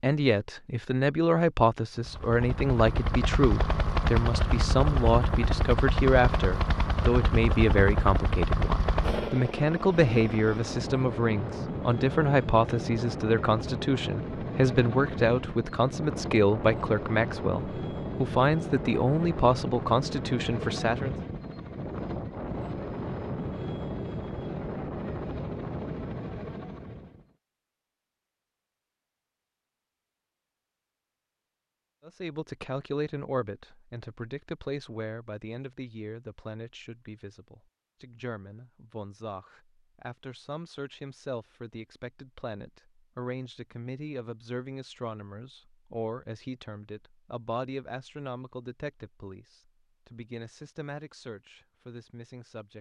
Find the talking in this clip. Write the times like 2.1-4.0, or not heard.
0.0-21.1, 32.0-52.7.